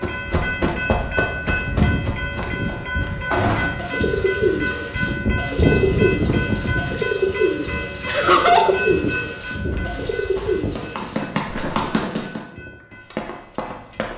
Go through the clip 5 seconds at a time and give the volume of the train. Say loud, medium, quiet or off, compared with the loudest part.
loud, loud, quiet.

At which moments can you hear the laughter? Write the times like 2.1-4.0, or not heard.
8.1-8.8.